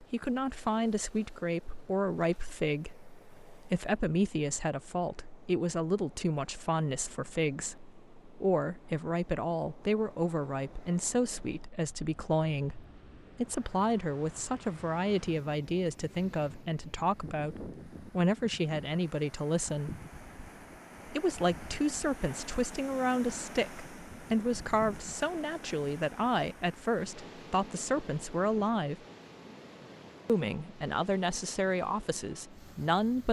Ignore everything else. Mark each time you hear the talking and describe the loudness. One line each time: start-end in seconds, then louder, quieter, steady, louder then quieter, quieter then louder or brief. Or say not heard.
0.0-19.9 steady
21.1-28.9 steady
30.2-33.2 brief.